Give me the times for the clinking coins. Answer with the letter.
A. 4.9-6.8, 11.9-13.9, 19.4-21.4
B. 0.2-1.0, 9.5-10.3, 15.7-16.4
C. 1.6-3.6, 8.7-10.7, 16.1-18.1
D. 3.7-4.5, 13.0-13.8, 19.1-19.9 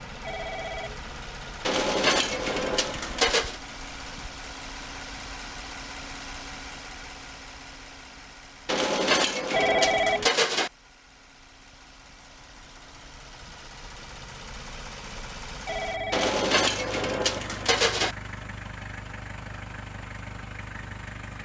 C.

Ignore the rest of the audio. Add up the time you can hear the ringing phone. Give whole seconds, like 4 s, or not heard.
2 s.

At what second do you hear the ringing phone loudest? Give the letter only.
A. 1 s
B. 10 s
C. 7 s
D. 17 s
B.